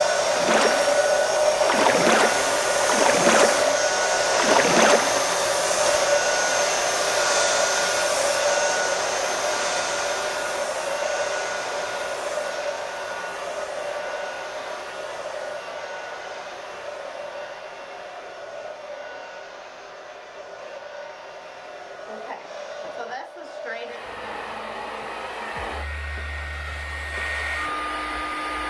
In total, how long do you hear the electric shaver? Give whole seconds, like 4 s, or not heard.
not heard.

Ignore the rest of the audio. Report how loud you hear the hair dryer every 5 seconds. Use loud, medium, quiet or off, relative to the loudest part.
loud, loud, medium, quiet, quiet, medium.